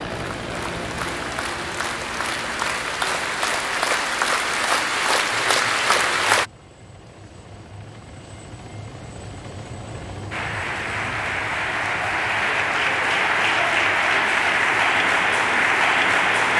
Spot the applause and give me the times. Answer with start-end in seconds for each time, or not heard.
0.0-6.5, 10.3-16.5.